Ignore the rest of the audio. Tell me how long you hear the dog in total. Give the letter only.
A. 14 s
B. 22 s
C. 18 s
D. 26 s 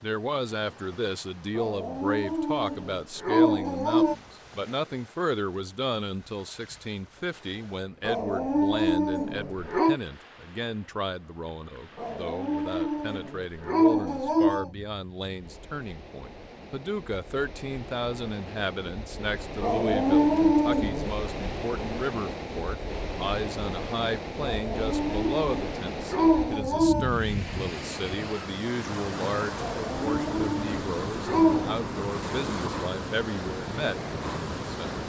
A.